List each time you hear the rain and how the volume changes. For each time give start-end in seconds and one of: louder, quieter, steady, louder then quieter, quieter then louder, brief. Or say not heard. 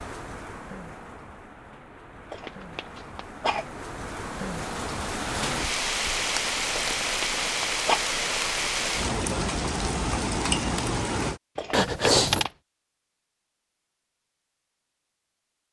0.0-11.4 louder.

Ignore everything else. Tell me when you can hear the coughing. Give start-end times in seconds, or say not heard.
2.3-3.6, 6.8-8.0, 11.6-12.5.